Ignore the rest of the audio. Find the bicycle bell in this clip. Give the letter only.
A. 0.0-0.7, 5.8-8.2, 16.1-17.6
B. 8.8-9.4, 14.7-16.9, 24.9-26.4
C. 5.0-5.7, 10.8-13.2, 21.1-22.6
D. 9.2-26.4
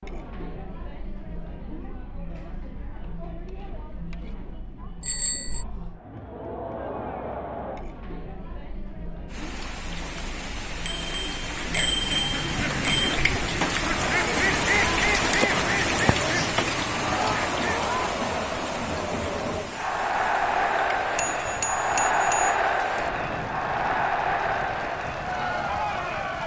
C.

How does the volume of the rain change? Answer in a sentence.
The loudness of the rain goes up, then down.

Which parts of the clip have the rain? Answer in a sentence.
The rain can be heard from 9.2 to 26.4 s.